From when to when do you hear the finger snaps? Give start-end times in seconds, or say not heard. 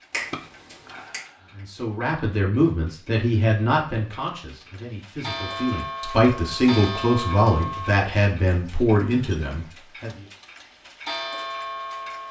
0.1-1.2.